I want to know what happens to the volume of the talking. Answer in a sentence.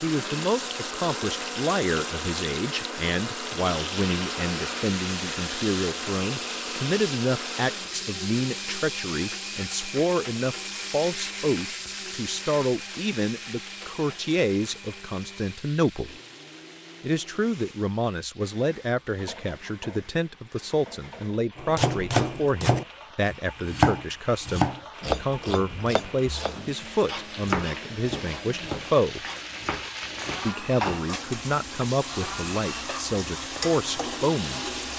The loudness of the talking stays about the same.